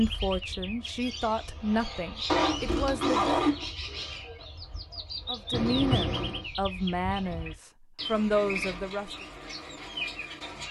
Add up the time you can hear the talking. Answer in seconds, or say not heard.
7 s.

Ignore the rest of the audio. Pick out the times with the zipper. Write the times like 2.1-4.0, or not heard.
2.2-3.7, 5.5-6.5.